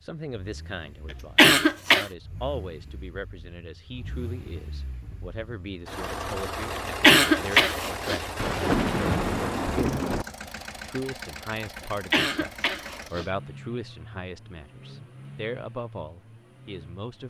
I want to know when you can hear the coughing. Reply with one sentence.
You can hear the coughing from 1.4 to 2.0 s, from 7.0 to 8.2 s and from 12.1 to 13.2 s.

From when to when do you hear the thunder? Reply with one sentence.
The thunder can be heard from 8.3 to 10.2 s.